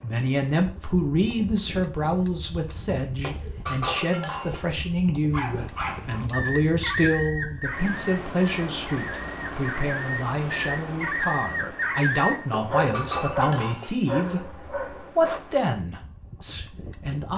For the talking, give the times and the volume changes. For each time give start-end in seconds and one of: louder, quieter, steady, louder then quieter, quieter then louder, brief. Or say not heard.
0.0-17.3 steady.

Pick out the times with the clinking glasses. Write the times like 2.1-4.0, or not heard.
3.2-4.7, 12.5-14.0.